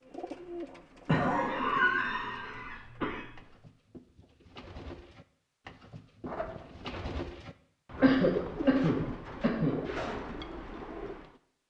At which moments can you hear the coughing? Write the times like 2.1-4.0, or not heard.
1.1-3.3, 8.0-9.8.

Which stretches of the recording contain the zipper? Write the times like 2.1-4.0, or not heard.
6.2-7.2.